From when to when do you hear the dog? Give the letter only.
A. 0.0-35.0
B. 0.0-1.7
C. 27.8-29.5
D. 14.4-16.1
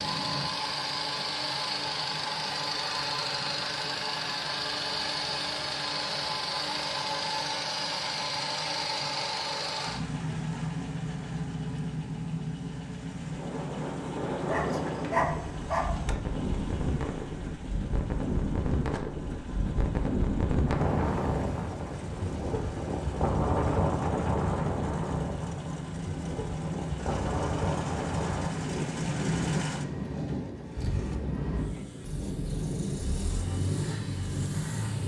D.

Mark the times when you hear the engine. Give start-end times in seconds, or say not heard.
0.0-35.0.